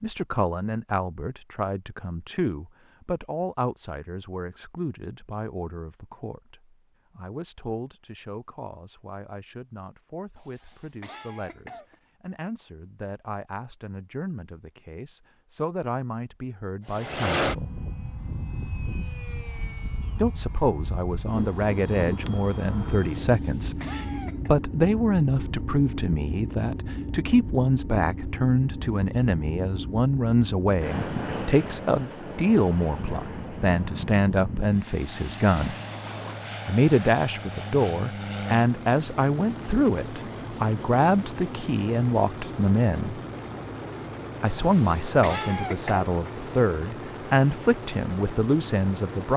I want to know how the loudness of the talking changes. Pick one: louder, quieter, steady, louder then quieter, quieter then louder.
louder.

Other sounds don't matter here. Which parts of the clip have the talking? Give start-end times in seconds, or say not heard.
0.0-17.7, 20.1-35.8, 36.6-43.2, 44.4-49.3.